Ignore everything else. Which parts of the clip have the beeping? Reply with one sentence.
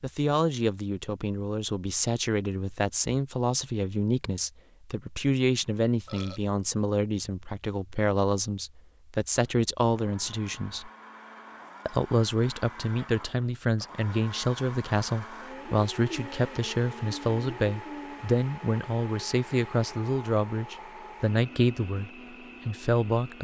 The beeping can't be heard in this clip.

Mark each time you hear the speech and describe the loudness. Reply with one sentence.
The speech can be heard from 0.0 to 10.9 s, at a steady volume; and from 11.8 to 23.4 s, at a steady volume.